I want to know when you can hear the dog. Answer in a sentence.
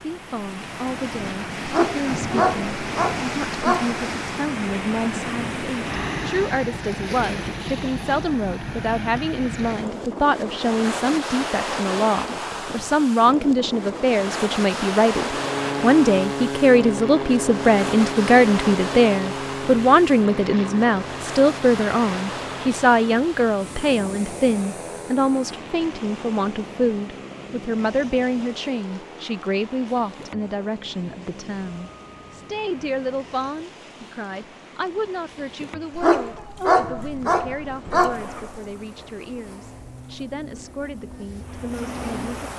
The dog can be heard from 1.6 to 4.0 s and from 36.0 to 38.6 s.